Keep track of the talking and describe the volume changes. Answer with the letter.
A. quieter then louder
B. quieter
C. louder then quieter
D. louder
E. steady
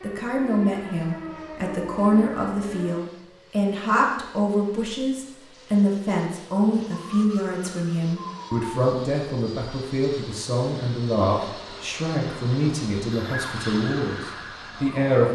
E.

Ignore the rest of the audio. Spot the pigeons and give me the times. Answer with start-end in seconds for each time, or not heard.
not heard.